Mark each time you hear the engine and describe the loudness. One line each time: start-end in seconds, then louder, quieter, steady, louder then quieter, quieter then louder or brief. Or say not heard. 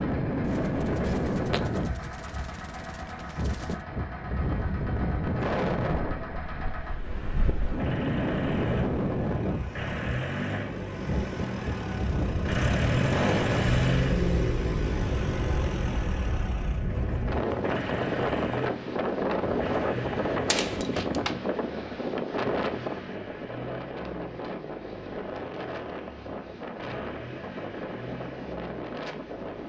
0.0-29.6 louder then quieter.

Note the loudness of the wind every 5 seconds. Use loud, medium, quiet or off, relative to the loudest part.
loud, loud, loud, loud, loud, medium.